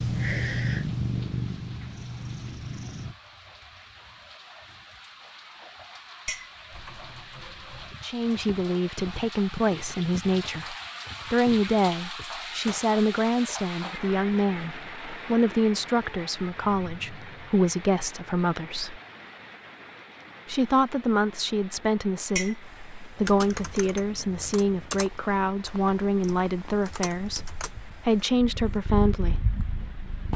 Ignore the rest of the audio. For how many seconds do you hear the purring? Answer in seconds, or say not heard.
10 s.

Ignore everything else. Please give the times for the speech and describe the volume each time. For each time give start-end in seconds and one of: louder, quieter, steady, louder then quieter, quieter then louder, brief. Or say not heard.
8.0-19.0 steady
20.4-29.4 steady.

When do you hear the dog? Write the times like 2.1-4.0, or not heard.
not heard.